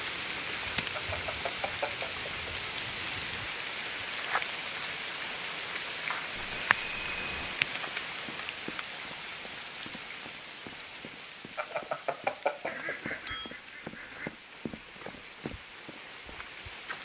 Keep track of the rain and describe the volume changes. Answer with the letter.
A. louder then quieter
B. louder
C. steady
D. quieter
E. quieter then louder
D.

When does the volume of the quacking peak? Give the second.
13 s.